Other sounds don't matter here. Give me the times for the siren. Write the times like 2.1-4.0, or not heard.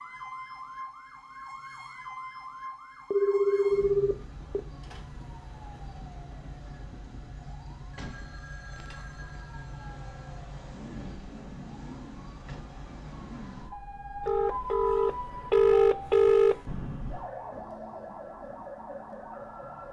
0.0-19.8.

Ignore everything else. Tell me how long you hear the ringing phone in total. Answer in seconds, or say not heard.
6 s.